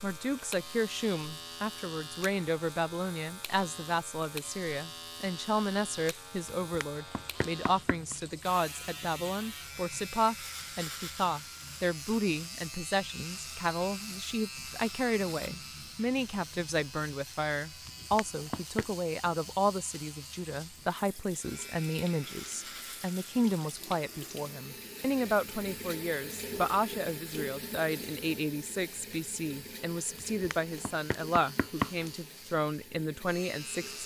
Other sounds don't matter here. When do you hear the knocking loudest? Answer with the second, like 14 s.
32 s.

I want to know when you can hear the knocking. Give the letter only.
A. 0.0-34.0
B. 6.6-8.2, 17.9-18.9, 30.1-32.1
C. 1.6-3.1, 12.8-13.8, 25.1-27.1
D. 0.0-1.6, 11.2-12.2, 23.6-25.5
B.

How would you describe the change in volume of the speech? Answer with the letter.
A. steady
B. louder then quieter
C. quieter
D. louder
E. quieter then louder
A.